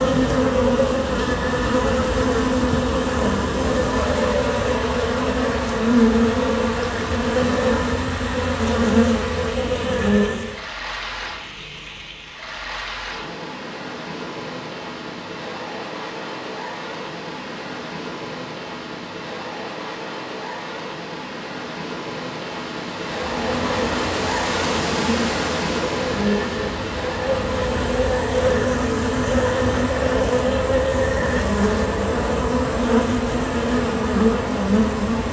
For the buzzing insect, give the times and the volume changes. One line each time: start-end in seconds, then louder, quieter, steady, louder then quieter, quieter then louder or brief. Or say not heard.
0.0-10.7 steady
23.1-35.2 louder.